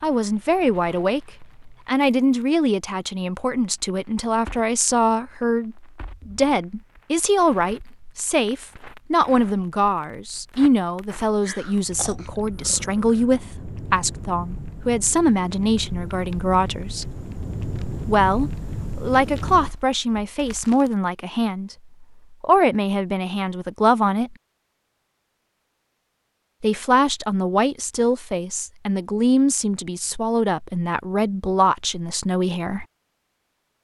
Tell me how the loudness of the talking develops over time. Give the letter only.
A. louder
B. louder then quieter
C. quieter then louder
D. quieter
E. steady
E.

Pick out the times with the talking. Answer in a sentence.
You can hear the talking from 0.0 to 17.1 s, from 18.1 to 24.4 s and from 26.6 to 32.9 s.